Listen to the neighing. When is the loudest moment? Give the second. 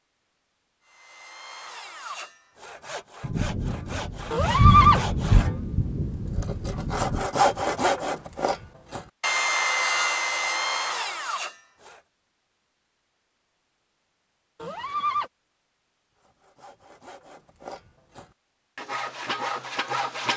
5 s.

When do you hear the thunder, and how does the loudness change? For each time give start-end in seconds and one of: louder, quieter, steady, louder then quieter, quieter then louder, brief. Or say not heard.
3.2-7.3 louder then quieter.